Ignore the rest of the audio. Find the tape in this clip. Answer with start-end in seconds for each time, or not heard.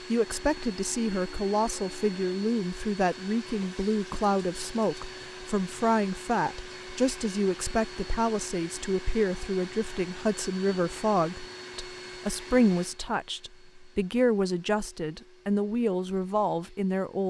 not heard.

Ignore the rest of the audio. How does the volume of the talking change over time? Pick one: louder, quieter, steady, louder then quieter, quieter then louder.
steady.